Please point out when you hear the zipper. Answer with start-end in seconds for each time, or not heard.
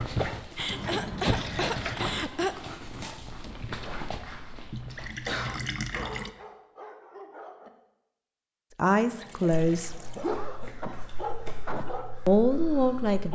not heard.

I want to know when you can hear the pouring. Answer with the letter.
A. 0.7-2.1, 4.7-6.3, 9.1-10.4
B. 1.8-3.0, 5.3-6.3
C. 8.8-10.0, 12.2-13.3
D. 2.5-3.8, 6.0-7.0
A.